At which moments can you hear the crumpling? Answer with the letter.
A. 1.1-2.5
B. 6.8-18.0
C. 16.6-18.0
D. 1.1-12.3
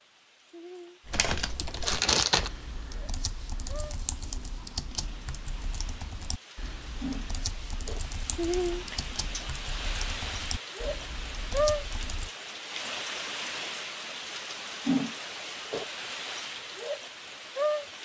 A.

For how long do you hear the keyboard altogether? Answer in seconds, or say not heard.
11 s.